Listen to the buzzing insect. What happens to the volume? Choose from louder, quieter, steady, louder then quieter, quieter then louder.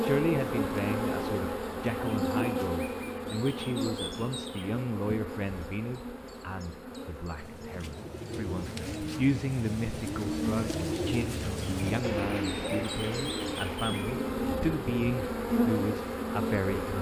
quieter then louder.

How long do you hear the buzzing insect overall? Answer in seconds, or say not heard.
17 s.